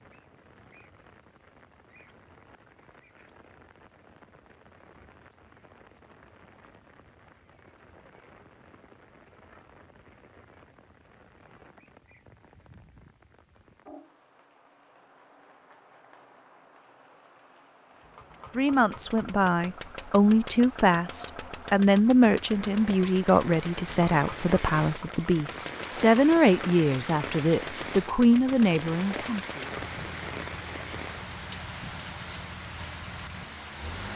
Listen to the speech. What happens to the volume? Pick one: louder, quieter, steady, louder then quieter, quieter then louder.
steady.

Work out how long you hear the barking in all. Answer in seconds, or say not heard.
not heard.